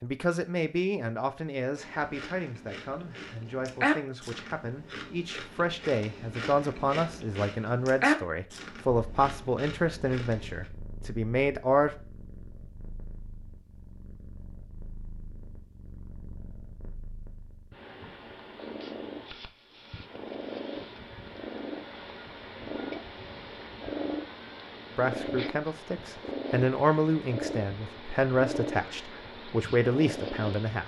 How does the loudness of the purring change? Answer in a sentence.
The volume of the purring goes up.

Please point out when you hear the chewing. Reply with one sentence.
You can hear the chewing from 1.8 to 10.7 s.